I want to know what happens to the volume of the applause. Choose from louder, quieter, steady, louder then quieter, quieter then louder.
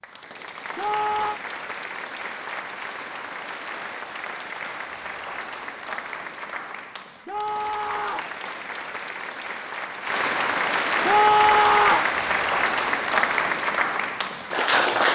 louder.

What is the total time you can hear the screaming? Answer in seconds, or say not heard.
3 s.